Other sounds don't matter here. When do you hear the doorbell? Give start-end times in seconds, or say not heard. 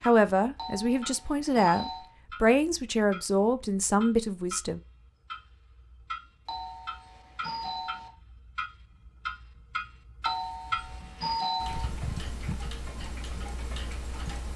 0.6-2.1, 6.5-8.1, 10.2-11.8.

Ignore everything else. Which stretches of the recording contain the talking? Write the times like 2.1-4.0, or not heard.
0.0-4.8.